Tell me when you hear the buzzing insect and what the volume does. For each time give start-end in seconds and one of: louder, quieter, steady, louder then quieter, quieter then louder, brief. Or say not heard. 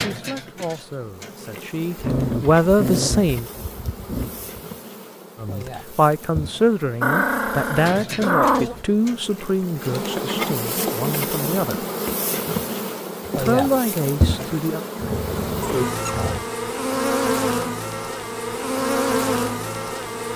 0.0-20.3 louder.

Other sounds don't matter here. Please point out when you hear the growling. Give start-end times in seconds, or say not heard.
1.9-4.6, 7.0-8.8, 15.0-16.4.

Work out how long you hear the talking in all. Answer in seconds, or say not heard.
11 s.